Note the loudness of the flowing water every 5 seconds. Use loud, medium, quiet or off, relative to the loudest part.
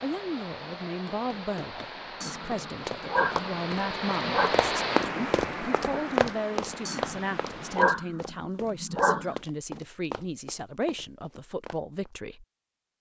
loud, loud, off.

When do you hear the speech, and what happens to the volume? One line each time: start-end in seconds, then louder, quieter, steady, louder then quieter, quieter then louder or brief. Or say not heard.
0.0-12.4 steady.